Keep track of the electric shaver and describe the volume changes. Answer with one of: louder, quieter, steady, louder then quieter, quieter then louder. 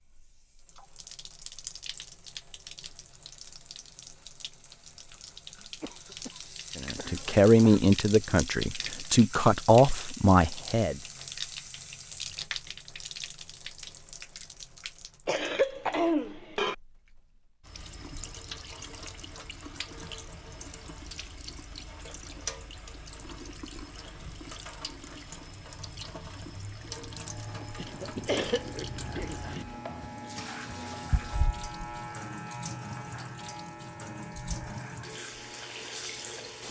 louder then quieter.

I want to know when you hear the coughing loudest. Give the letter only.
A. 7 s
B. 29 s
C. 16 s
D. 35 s
C.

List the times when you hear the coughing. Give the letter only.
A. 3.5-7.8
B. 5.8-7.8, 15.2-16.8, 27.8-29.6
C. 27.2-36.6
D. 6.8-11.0
B.